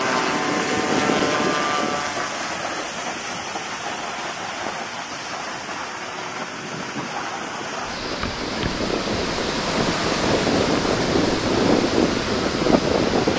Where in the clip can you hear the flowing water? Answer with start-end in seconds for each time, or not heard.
0.0-13.3.